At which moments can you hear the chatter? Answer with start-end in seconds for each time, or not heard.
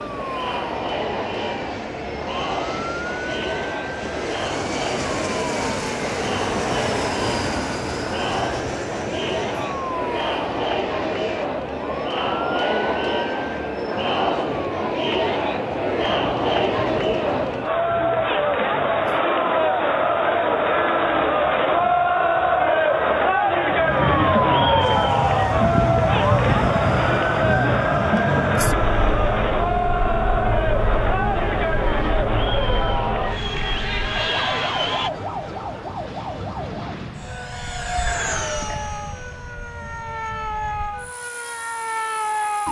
0.0-35.1.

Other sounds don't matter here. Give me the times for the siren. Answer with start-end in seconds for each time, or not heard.
0.0-42.6.